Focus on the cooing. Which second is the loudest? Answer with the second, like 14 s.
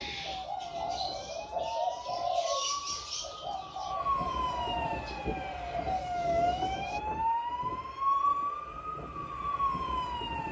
2 s.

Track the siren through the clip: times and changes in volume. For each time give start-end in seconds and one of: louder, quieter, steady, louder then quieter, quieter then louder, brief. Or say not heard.
0.0-10.4 louder.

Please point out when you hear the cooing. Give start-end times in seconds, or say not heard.
0.0-7.0.